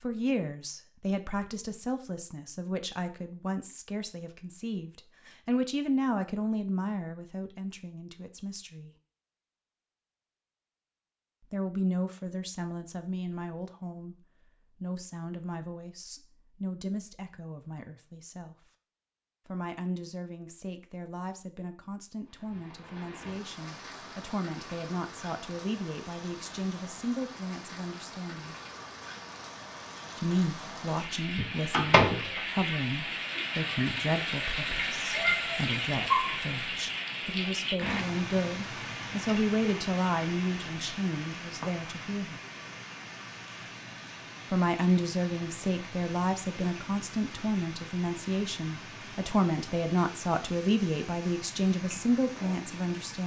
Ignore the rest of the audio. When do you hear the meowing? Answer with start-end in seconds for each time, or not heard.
not heard.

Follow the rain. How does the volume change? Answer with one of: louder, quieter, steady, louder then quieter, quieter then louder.
louder then quieter.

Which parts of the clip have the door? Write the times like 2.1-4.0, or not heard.
31.4-32.4.